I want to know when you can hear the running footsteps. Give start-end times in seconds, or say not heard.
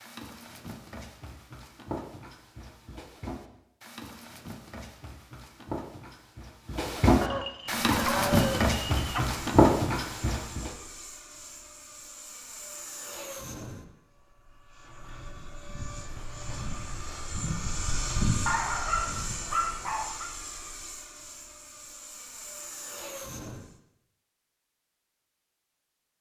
0.0-10.7.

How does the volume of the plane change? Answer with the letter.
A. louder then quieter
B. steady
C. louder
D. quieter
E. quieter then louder
A.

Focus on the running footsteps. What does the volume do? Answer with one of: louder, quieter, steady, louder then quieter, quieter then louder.
louder.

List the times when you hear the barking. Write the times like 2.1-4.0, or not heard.
7.2-9.2, 18.4-20.3.